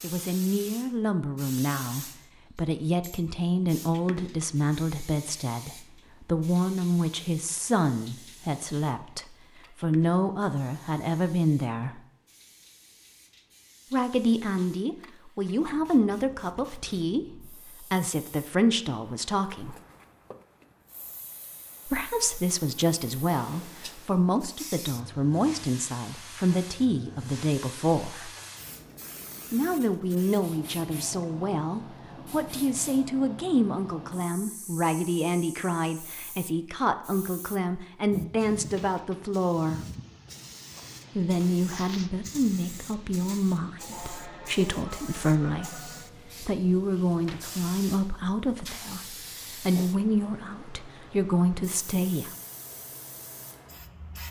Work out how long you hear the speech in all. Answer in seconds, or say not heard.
46 s.